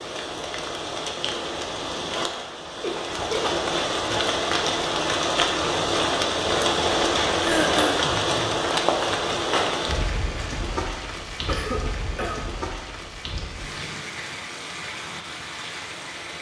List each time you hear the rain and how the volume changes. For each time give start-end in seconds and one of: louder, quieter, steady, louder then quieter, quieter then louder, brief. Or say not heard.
0.0-16.3 louder then quieter.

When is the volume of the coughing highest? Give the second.
8 s.